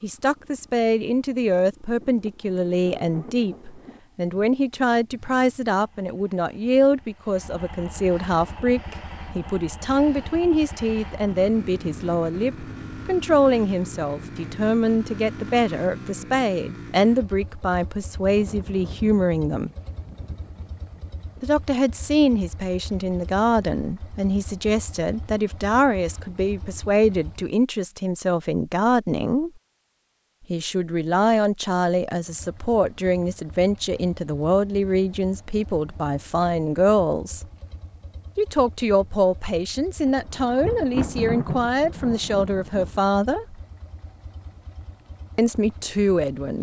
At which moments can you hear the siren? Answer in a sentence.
The siren can't be heard in this clip.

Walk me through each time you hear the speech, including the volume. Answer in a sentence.
The speech can be heard from 0.0 to 19.7 s, at a steady volume; from 21.4 to 29.5 s, at a steady volume; from 30.5 to 37.5 s, at a steady volume; from 38.4 to 43.6 s, at a steady volume; and briefly from 45.4 to 46.5 s.